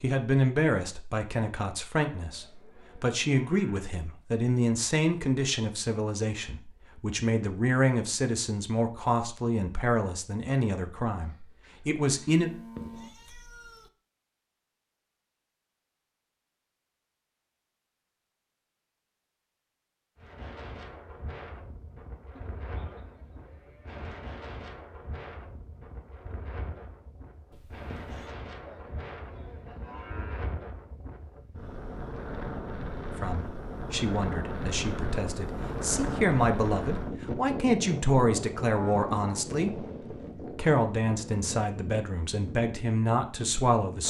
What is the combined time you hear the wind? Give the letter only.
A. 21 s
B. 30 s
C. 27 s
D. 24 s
D.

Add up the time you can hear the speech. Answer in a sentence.
You can hear the speech for 23 seconds altogether.